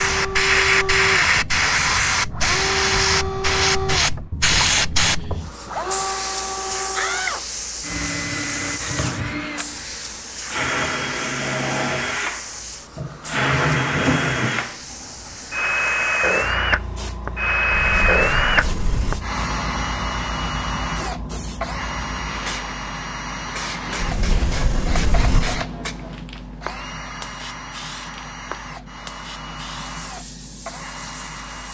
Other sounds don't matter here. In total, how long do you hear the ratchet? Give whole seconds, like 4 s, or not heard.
not heard.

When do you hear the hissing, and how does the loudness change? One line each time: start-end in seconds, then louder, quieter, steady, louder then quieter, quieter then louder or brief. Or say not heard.
0.0-31.6 quieter.